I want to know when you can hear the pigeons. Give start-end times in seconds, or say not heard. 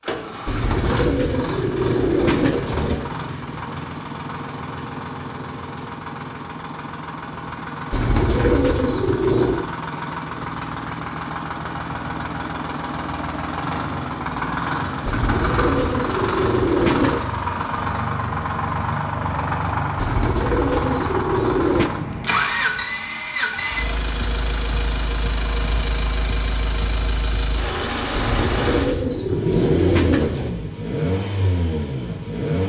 0.5-3.1, 7.9-9.7, 15.1-17.3, 19.9-21.9, 28.1-30.6.